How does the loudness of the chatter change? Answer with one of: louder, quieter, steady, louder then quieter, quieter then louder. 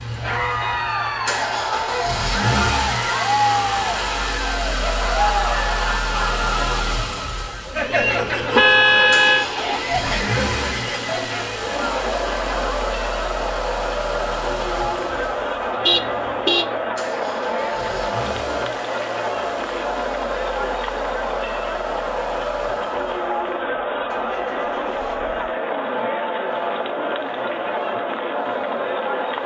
steady.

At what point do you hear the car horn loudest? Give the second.
9 s.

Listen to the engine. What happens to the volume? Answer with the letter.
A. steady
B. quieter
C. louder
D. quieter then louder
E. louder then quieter
B.